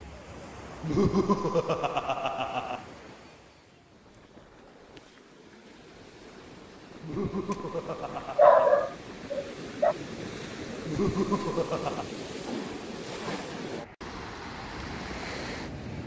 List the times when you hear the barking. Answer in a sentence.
The barking can be heard from 8.3 to 9.9 s.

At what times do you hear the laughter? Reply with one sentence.
You can hear the laughter from 0.8 to 2.9 s, from 7.0 to 8.7 s and from 10.8 to 12.1 s.